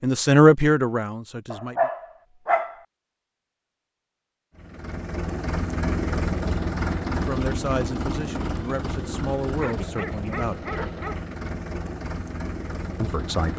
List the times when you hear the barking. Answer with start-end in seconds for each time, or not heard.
1.5-2.8, 9.6-11.2.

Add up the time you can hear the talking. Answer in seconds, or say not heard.
6 s.